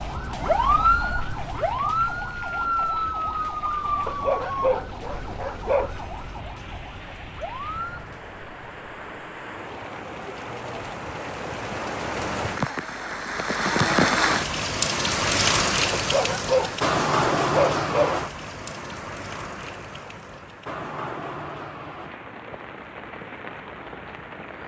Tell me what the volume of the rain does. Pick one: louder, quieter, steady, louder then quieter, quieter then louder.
louder then quieter.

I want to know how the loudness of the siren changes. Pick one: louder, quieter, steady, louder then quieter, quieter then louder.
quieter.